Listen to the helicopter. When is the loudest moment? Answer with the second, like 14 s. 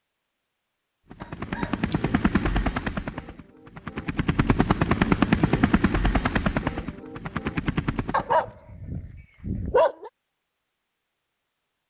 5 s.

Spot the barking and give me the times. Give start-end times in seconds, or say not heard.
1.2-1.9, 8.1-10.1.